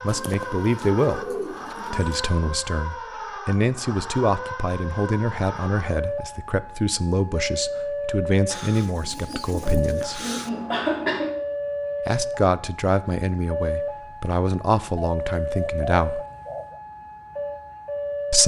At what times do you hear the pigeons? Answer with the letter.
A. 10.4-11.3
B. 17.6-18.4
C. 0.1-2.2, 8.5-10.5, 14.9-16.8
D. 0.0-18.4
C.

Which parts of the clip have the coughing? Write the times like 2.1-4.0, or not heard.
10.4-11.3.